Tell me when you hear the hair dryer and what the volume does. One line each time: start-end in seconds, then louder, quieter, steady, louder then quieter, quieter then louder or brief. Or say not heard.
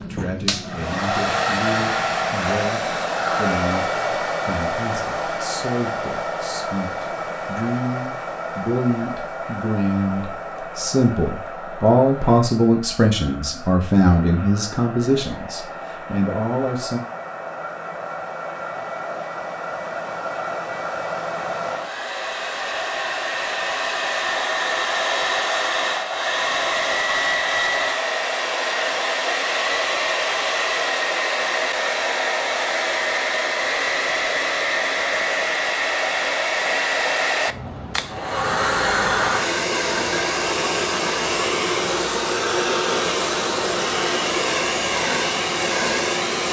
0.0-46.4 quieter then louder.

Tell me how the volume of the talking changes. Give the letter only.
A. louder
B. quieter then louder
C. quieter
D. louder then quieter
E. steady
A.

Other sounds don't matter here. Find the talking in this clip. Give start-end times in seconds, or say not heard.
0.0-17.0.